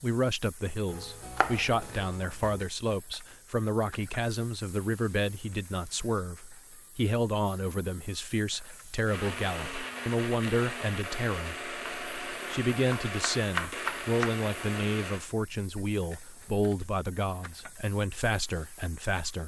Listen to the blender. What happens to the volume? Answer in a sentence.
The loudness of the blender stays about the same.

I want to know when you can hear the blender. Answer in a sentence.
You can hear the blender from 9.1 to 15.2 s.